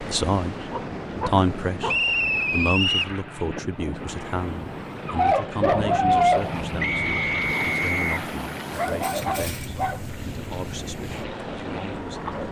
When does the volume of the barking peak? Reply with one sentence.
The loudest moment of the barking is at 6 seconds.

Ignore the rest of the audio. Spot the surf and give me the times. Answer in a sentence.
You can hear the surf from 0.0 to 12.4 s.